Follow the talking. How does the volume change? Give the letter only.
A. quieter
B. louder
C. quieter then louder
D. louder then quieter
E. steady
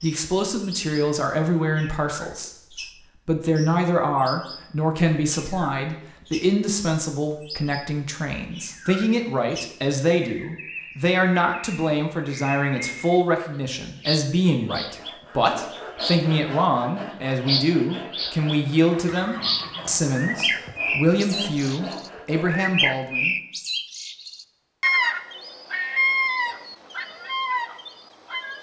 E.